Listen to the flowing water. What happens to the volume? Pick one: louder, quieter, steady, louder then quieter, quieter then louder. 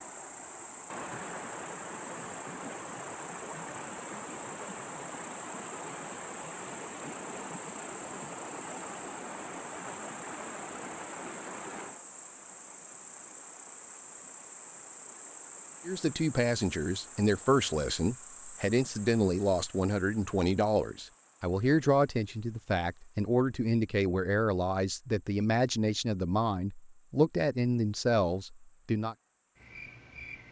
quieter.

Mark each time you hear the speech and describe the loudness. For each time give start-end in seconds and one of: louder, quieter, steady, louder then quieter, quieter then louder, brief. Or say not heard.
15.8-29.1 steady.